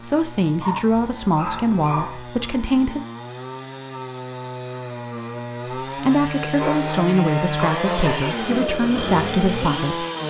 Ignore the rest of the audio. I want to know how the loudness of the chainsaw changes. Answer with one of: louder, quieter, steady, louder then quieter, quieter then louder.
louder.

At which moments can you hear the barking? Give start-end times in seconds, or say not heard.
0.6-2.2, 6.5-8.3.